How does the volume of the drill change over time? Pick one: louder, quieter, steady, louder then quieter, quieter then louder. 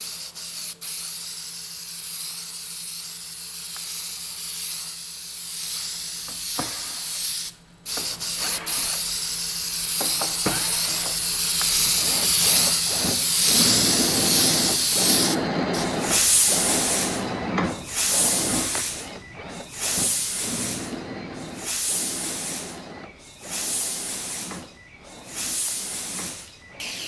louder then quieter.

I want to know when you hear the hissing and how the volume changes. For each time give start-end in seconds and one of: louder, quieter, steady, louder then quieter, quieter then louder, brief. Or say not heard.
0.0-27.0 louder then quieter.